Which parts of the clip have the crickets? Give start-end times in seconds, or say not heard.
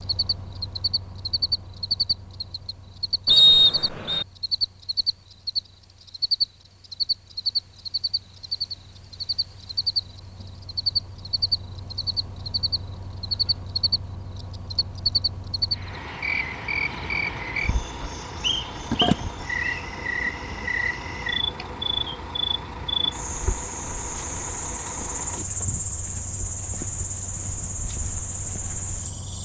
0.0-29.4.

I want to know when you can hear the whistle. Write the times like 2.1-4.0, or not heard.
3.2-4.2, 18.4-19.8.